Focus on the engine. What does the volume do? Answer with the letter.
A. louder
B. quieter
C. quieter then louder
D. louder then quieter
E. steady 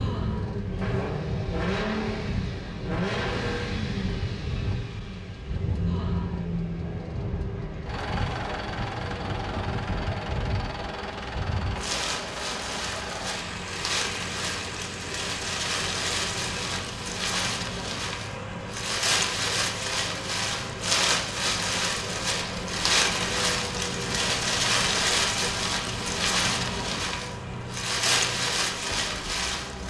B.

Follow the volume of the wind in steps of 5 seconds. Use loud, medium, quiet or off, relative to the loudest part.
medium, medium, medium, loud, loud, loud.